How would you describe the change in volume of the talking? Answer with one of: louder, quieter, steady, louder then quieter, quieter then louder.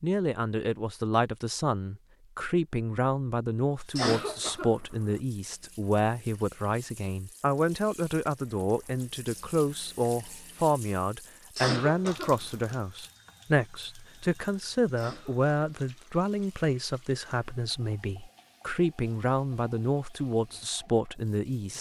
steady.